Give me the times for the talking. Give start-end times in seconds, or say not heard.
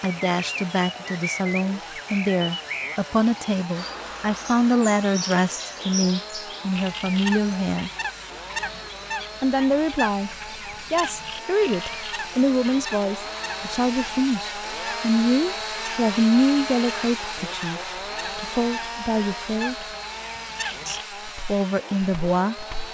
0.0-7.9, 9.4-19.9, 20.9-22.6.